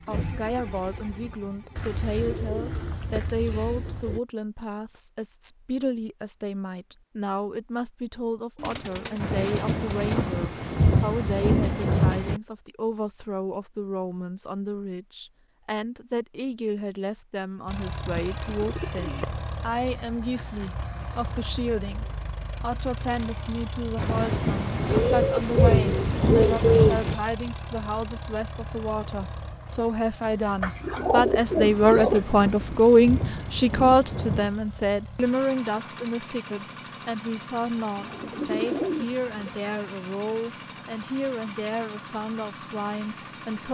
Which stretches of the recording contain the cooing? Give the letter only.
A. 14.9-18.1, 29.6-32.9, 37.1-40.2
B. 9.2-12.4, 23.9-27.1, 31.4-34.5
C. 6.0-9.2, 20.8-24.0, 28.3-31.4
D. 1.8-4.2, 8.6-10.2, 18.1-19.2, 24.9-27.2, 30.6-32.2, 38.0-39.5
D.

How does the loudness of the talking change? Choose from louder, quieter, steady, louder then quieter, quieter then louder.
louder then quieter.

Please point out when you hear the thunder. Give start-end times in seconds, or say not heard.
9.2-12.4, 23.9-27.1, 31.4-34.5.